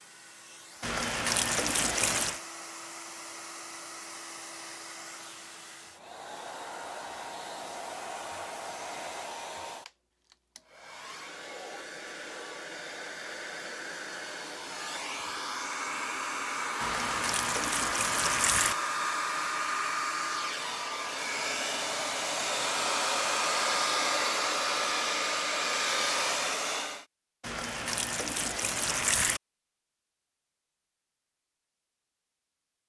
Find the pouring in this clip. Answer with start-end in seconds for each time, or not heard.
0.8-2.4, 16.8-18.8, 27.4-29.4.